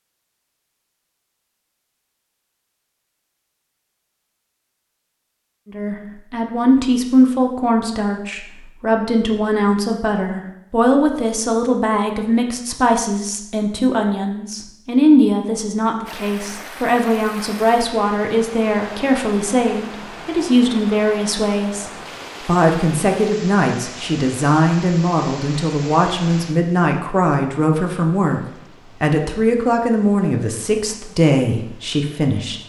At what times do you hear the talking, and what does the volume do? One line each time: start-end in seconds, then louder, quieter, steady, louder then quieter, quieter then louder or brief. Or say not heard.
5.7-32.6 steady.